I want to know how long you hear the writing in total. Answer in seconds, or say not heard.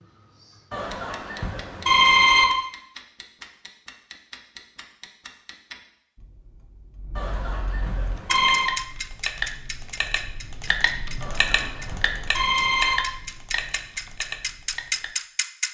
not heard.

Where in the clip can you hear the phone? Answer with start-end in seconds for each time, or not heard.
0.7-2.5, 7.2-8.7, 11.2-12.9.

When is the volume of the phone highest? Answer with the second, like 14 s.
2 s.